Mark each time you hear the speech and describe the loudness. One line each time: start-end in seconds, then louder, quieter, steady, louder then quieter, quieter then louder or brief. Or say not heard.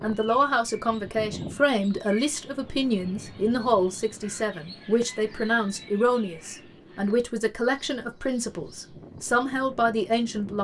0.0-10.5 steady.